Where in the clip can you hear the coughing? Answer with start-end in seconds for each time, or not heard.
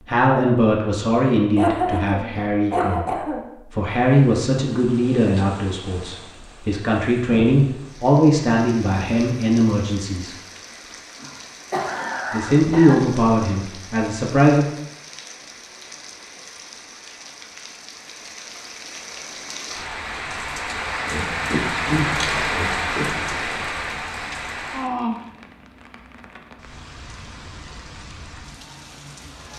1.6-3.5, 11.2-13.1, 21.1-23.1.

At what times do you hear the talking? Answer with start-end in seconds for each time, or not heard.
0.1-10.3, 12.3-14.7.